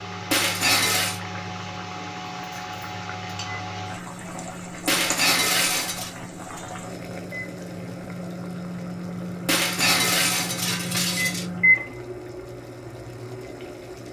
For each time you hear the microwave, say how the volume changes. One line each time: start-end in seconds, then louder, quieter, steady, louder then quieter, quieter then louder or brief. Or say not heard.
0.0-14.0 louder.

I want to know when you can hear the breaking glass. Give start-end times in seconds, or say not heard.
0.3-1.2, 4.8-6.1, 9.4-11.4.